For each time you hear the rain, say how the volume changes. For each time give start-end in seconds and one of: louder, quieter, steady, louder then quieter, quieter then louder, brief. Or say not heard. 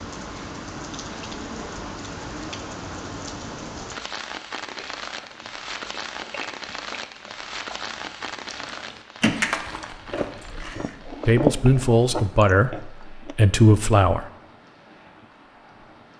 0.0-16.1 quieter.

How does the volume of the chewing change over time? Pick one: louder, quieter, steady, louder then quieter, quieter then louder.
louder.